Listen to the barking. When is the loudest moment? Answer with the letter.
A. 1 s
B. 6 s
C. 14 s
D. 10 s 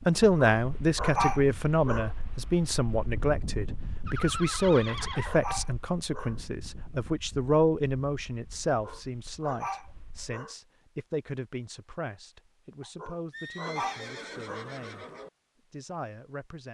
A.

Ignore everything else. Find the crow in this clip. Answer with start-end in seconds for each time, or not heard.
not heard.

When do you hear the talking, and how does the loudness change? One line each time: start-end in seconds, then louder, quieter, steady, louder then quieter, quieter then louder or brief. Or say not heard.
0.1-15.1 quieter
15.7-16.7 brief.